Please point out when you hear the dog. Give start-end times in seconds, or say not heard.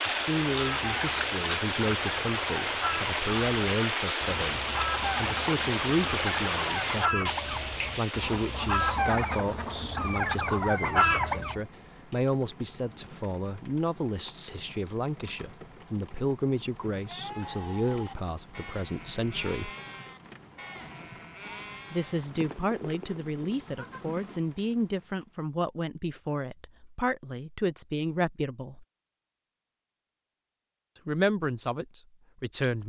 not heard.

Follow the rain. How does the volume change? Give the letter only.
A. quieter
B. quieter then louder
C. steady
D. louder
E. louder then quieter
A.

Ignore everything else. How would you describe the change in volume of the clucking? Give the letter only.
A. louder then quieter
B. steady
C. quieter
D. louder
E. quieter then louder
D.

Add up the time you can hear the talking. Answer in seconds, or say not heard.
28 s.